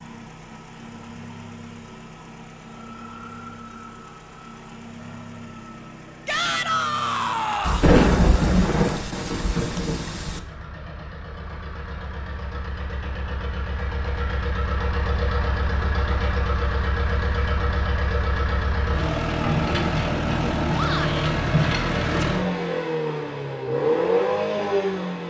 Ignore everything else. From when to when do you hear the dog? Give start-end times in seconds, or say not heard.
not heard.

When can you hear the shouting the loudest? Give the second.
7 s.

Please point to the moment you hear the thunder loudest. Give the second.
8 s.